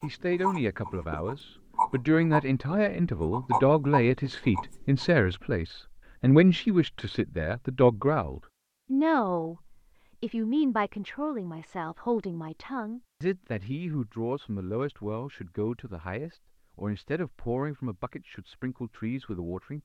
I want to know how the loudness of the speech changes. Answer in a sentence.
The volume of the speech goes down.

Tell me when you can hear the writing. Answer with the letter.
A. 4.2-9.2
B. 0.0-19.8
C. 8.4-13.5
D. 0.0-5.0
D.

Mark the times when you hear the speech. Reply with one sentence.
You can hear the speech from 0.0 to 19.8 s.